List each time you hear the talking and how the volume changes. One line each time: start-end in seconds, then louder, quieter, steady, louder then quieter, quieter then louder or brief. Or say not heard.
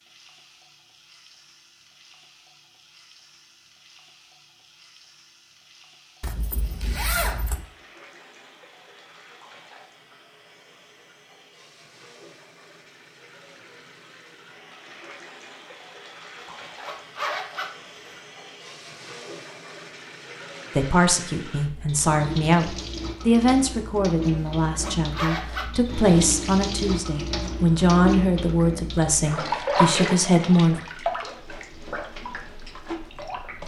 20.8-30.8 steady.